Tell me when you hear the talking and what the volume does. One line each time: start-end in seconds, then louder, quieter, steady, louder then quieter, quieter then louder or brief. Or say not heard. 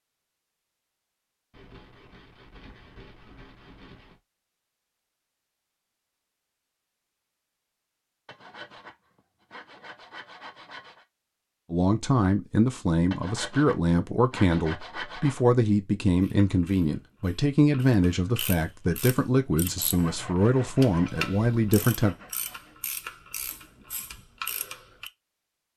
11.7-22.1 steady.